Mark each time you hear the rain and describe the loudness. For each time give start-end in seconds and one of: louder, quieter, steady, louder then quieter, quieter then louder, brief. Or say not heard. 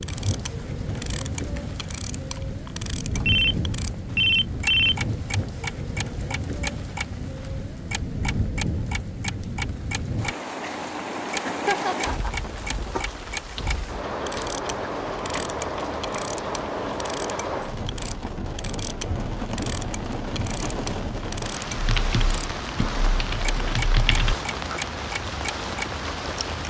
0.0-26.6 steady.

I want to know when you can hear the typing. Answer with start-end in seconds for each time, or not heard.
21.6-24.8.